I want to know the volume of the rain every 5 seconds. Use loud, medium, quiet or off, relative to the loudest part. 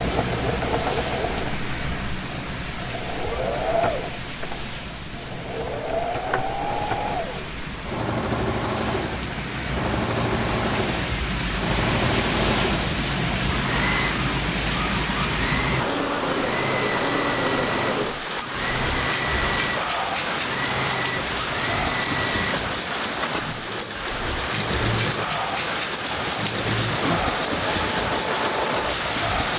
medium, medium, loud, loud, loud, loud.